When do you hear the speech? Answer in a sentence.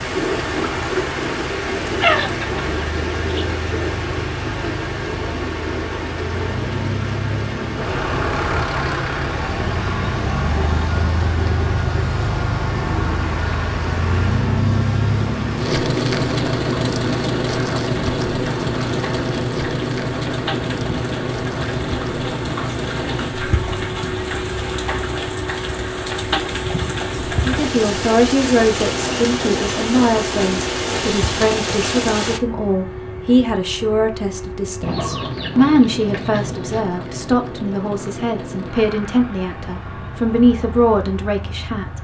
You can hear the speech from 27.4 to 41.9 s.